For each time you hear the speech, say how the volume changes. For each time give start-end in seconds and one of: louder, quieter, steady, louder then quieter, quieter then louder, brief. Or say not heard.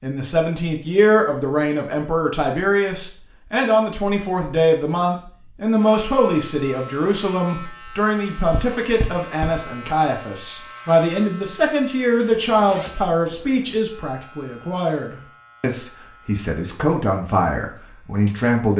0.0-18.7 steady.